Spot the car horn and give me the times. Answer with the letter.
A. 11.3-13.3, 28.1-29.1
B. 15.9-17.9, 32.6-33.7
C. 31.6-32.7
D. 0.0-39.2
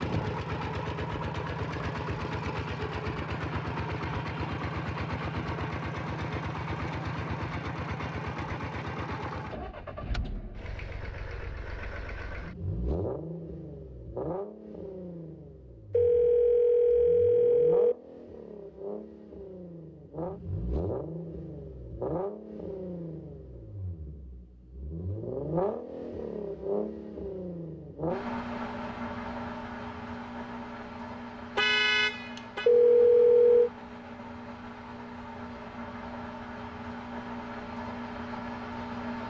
C.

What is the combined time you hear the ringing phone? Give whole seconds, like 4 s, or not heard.
3 s.